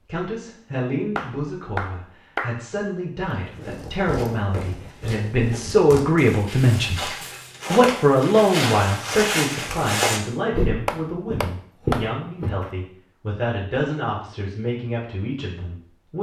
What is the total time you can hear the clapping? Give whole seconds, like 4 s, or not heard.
3 s.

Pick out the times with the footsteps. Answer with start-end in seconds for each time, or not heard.
3.5-12.7.